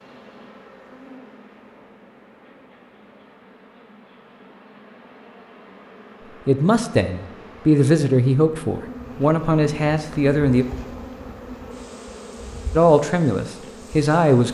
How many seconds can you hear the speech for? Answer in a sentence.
You can hear the speech for 6 seconds altogether.